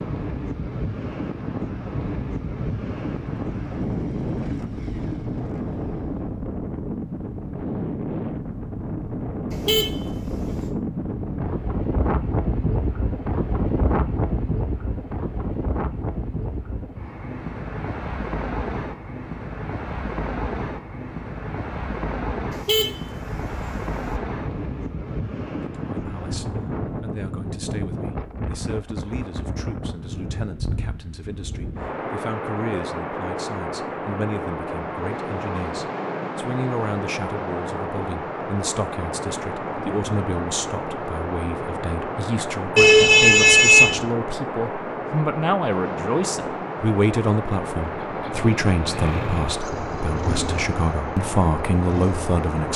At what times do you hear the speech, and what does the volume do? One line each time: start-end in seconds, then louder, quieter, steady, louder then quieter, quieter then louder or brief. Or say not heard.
25.9-52.7 louder.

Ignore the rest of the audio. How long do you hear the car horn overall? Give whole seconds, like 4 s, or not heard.
4 s.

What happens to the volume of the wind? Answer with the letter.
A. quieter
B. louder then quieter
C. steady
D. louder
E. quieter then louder
C.